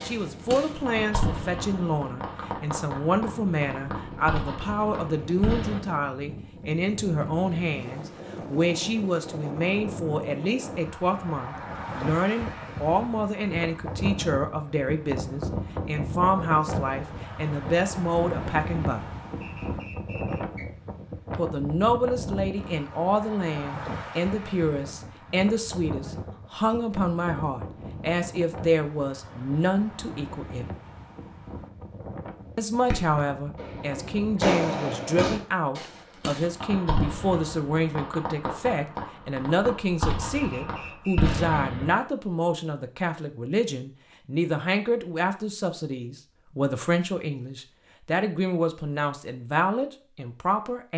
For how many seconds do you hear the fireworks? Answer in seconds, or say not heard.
15 s.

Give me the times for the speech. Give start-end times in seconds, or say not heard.
0.0-19.1, 21.4-30.8, 32.5-50.9.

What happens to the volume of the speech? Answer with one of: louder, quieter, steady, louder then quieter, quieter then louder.
steady.